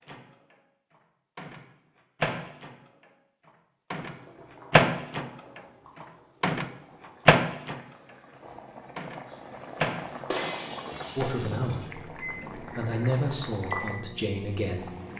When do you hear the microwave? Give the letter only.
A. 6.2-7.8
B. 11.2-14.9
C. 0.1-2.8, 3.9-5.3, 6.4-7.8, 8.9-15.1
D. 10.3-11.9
C.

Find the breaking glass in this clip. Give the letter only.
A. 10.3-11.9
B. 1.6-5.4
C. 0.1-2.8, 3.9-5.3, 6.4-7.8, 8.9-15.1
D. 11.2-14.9
A.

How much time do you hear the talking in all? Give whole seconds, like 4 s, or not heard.
4 s.